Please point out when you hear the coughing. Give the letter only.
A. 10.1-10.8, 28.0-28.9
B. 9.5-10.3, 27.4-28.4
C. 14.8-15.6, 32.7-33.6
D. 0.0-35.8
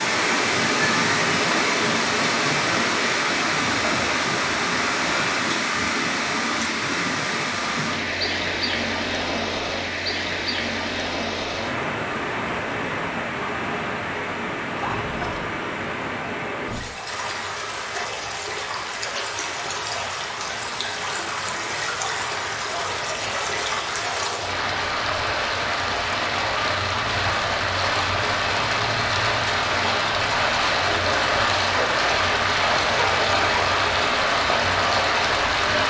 C.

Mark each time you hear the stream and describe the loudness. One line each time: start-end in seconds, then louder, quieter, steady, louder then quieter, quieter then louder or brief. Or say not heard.
0.0-35.8 quieter then louder.